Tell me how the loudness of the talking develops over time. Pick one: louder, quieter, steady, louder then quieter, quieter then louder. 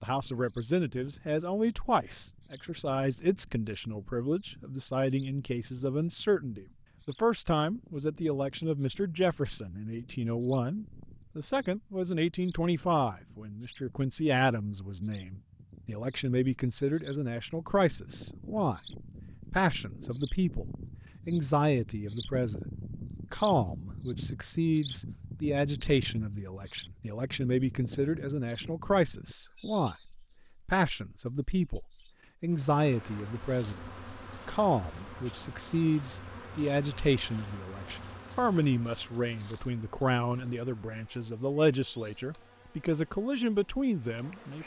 steady.